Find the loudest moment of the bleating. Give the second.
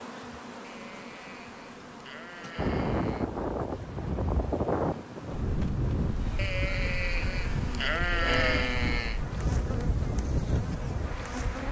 8 s.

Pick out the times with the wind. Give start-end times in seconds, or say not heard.
2.5-11.6.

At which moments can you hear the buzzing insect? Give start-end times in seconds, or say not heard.
0.0-11.6.